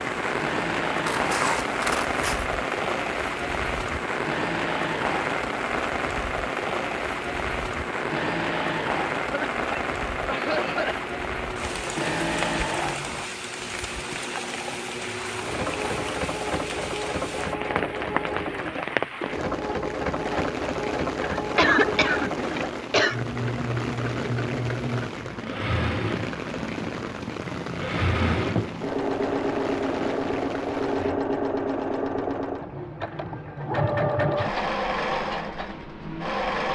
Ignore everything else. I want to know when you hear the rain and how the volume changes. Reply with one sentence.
You can hear the rain from 0.0 to 31.2 s, getting quieter.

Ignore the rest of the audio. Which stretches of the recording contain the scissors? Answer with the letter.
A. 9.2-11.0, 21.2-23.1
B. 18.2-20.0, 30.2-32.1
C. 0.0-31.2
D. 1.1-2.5
D.